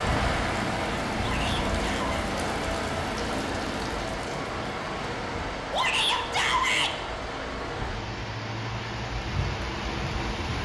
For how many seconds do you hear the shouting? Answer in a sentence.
You can hear the shouting for 2 seconds altogether.